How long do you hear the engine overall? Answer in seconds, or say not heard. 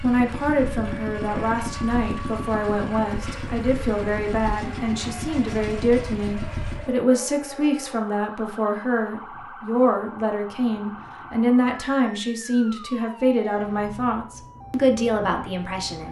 7 s.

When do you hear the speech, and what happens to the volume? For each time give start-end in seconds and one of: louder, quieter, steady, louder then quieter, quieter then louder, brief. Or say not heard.
0.0-16.0 steady.